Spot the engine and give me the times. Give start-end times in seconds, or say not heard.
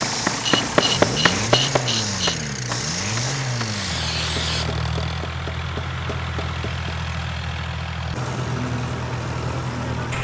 0.0-10.1.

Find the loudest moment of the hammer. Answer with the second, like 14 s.
1 s.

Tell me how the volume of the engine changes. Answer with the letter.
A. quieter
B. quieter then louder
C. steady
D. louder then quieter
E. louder
C.